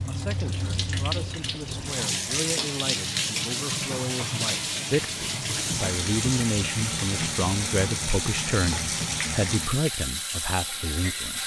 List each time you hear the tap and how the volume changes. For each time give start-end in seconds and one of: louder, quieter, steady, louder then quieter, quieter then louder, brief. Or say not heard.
0.0-11.4 steady.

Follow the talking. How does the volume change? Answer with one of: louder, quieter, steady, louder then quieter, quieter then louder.
louder.